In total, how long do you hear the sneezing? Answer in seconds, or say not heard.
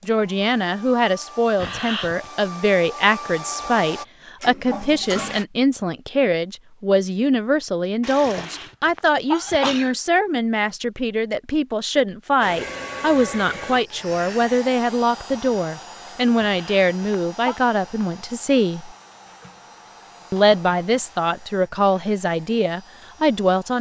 4 s.